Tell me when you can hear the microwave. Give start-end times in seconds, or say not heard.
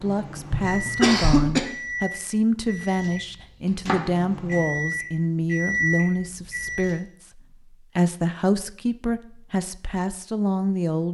0.0-7.0.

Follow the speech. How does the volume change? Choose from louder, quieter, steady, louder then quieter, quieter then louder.
steady.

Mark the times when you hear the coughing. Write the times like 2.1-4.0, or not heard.
0.5-1.6.